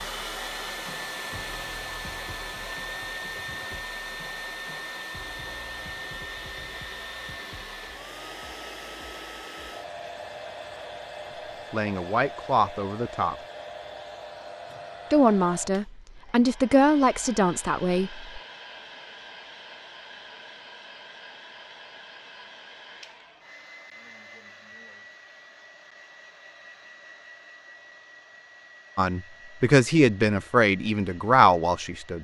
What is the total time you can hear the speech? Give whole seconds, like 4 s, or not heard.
8 s.